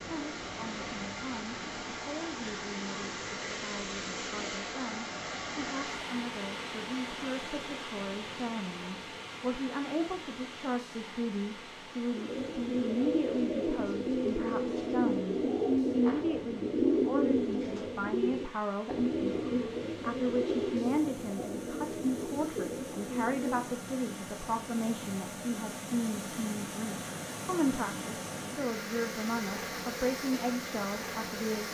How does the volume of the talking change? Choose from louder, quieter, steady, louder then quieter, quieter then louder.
louder.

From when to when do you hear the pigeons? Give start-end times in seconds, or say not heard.
12.2-23.8.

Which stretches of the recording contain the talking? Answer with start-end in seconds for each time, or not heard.
0.1-31.6.